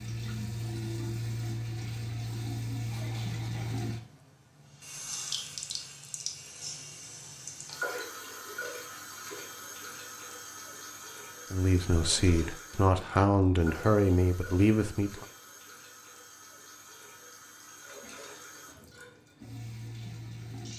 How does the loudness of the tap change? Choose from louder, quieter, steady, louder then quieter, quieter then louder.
quieter.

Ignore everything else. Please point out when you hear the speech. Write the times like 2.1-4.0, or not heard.
11.5-15.2.